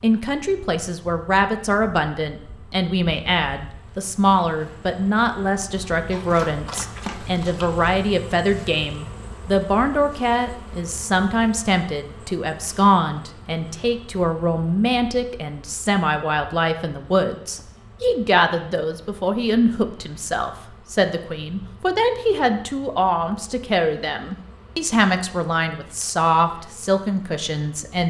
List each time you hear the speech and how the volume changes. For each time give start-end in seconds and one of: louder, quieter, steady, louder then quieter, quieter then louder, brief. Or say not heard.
0.0-28.0 steady.